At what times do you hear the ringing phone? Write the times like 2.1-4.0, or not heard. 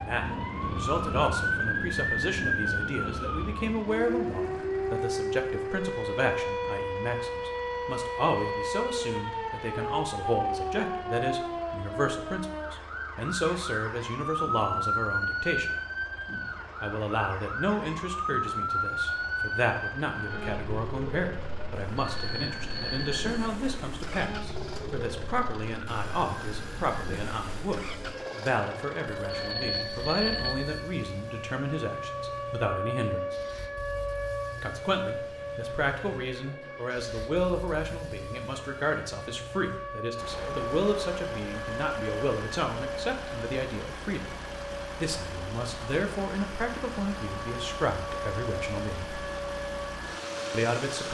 21.9-23.5, 29.1-30.8.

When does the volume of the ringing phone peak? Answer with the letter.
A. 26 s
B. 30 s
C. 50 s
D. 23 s
B.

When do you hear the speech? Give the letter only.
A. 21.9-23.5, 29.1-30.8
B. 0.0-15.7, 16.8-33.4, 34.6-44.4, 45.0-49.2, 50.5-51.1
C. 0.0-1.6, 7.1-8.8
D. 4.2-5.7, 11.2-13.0
B.